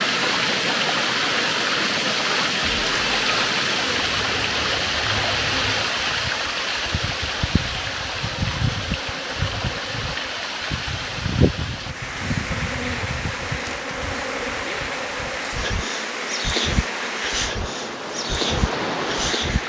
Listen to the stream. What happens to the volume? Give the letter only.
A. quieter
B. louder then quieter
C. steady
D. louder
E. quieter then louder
A.